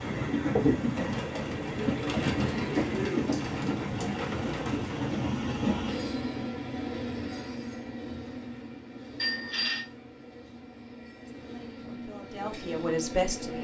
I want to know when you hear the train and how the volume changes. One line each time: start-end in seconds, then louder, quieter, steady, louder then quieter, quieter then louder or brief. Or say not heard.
0.0-13.5 quieter.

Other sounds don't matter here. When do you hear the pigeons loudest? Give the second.
1 s.